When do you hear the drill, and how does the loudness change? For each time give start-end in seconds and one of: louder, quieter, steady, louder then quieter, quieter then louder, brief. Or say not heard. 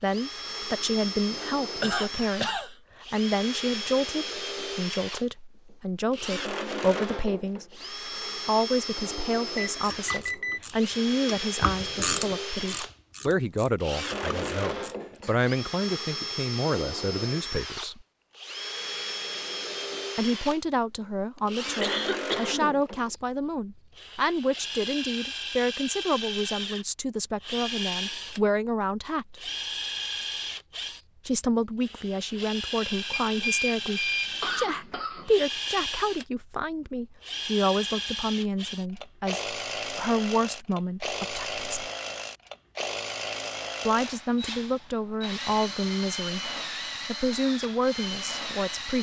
0.0-48.9 steady.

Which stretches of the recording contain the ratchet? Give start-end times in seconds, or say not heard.
9.8-15.5.